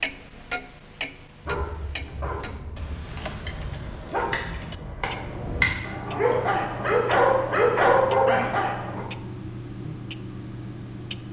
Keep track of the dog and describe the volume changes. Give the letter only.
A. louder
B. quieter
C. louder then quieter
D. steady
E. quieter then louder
A.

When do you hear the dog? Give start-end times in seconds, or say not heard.
1.4-9.1.